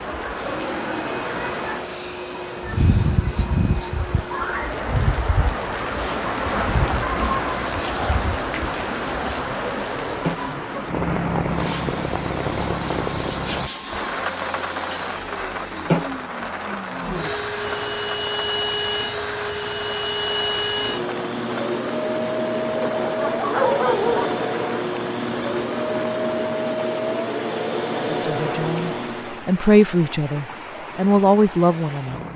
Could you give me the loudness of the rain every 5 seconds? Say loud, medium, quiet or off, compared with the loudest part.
loud, loud, loud, medium, medium, medium, medium.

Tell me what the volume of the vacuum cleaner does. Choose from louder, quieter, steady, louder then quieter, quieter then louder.
louder.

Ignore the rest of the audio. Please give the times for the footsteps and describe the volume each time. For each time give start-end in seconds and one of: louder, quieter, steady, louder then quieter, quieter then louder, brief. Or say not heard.
not heard.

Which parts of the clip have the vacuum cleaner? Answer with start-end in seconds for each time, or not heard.
0.2-29.4.